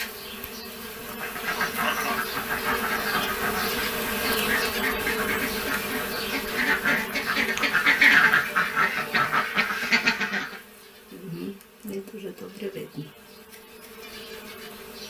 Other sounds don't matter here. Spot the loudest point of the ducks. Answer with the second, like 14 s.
8 s.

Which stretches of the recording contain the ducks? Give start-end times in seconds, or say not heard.
1.1-10.6.